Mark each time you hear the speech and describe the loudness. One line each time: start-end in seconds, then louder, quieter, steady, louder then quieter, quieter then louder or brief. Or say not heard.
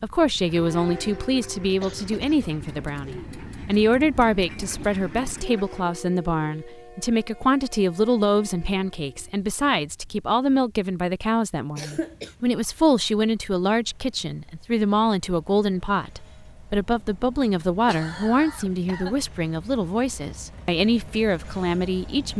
0.0-22.3 steady.